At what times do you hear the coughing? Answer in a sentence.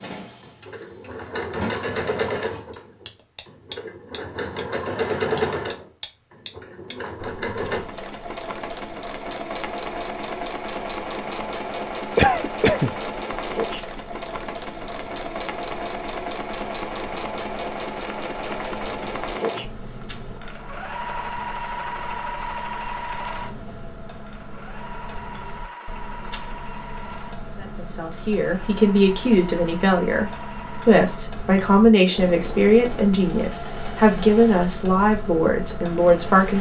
You can hear the coughing from 12.2 to 12.9 s.